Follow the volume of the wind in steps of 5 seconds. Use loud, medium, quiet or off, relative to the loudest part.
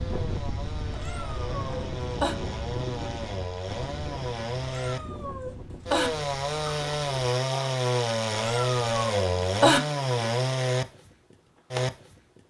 loud, medium, off.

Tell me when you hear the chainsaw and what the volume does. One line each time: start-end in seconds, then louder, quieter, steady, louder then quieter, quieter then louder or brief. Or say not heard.
0.0-12.4 louder.